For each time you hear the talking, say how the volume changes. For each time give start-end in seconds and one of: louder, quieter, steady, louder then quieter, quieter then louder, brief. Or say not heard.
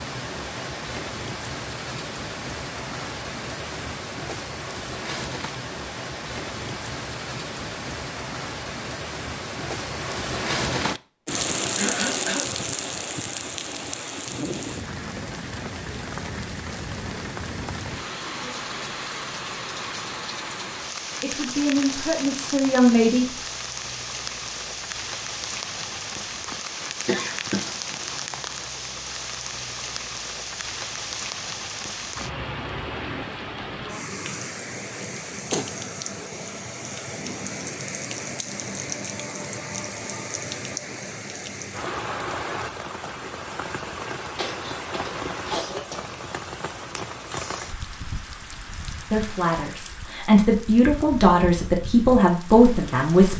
21.2-23.2 brief
49.1-53.3 louder.